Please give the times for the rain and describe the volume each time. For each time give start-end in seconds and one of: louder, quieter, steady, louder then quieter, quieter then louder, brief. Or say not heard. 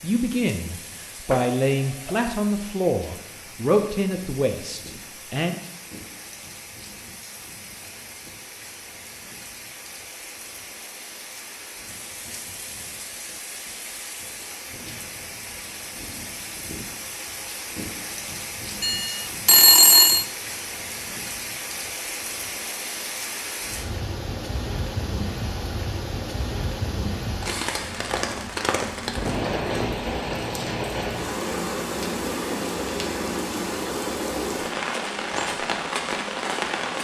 0.0-36.9 louder.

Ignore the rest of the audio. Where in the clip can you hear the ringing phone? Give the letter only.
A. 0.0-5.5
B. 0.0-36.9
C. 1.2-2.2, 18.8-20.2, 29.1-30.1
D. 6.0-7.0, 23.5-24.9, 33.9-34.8
C.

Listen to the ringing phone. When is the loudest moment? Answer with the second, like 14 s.
20 s.